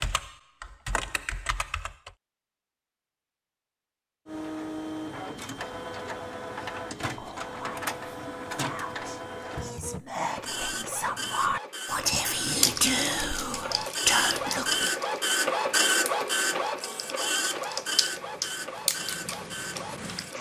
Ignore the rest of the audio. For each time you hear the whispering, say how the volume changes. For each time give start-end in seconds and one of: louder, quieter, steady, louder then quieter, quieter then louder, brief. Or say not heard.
7.0-14.9 louder.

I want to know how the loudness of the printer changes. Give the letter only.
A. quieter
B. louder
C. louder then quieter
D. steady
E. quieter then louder
C.